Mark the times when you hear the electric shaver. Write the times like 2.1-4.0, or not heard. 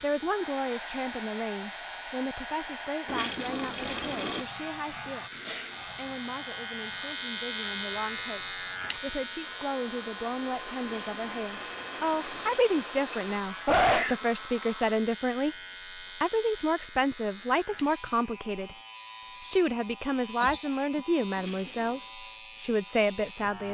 0.0-23.6.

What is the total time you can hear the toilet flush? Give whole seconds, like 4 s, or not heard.
4 s.